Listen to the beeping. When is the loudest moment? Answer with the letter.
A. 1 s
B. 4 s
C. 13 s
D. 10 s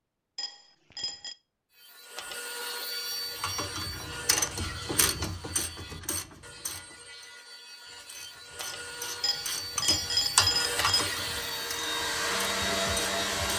D.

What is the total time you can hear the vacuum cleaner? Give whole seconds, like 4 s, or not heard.
3 s.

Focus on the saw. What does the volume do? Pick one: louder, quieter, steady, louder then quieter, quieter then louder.
quieter then louder.